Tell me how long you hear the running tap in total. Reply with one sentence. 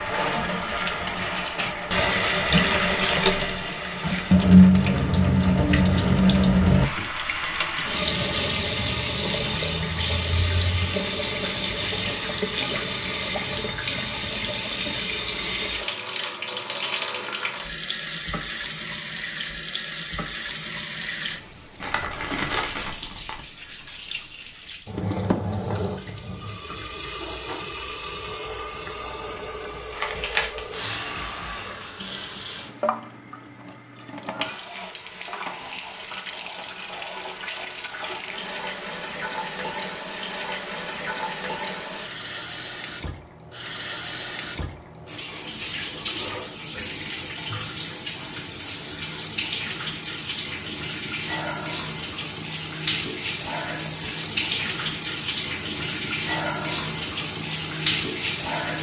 You can hear the running tap for 59 seconds altogether.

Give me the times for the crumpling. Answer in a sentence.
The crumpling can be heard from 21.8 to 23.4 s and from 29.9 to 31.6 s.